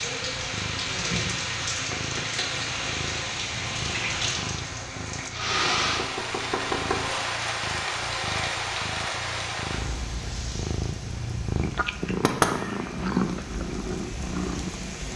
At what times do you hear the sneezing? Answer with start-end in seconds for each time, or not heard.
not heard.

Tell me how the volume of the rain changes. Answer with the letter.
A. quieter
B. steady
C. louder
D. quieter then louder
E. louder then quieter
A.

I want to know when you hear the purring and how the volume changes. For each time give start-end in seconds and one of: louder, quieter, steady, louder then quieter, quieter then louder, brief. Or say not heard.
0.1-15.1 louder.